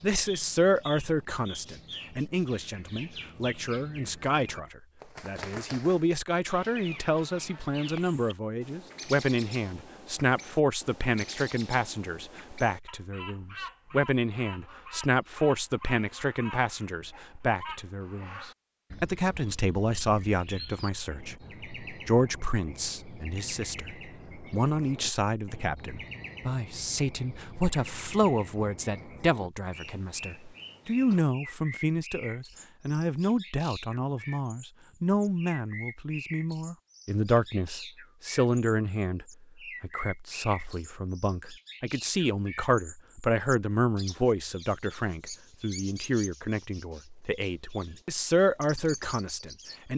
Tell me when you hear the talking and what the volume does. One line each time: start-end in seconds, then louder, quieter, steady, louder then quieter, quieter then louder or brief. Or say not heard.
0.0-49.9 steady.